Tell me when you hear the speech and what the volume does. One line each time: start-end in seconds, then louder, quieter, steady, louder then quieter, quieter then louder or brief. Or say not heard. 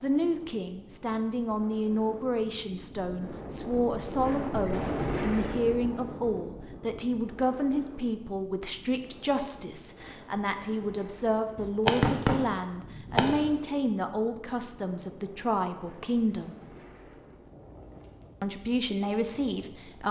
0.0-16.6 steady
18.4-20.0 brief.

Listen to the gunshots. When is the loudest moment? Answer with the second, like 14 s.
12 s.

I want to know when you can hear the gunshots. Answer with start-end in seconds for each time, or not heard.
11.6-13.5.